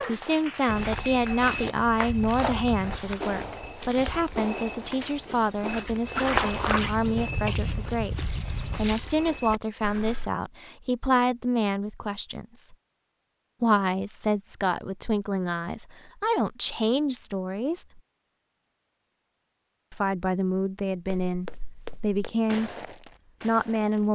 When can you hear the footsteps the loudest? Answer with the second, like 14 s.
6 s.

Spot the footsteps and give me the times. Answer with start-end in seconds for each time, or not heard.
0.7-10.3, 21.1-24.1.